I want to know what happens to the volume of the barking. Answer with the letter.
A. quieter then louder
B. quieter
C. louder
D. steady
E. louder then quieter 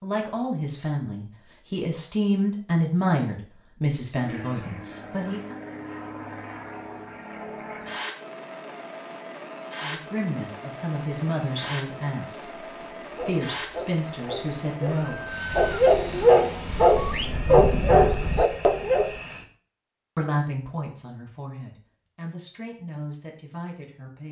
C.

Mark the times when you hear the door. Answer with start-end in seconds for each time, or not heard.
not heard.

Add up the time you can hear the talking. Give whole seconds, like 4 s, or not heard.
16 s.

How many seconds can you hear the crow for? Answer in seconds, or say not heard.
not heard.